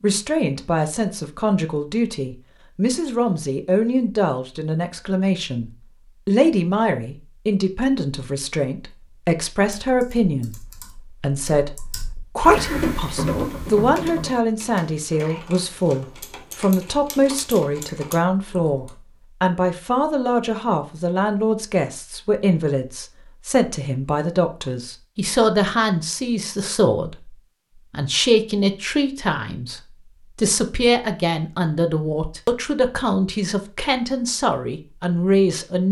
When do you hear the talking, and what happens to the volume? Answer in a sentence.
The talking can be heard from 0.0 to 35.8 s, at a steady volume.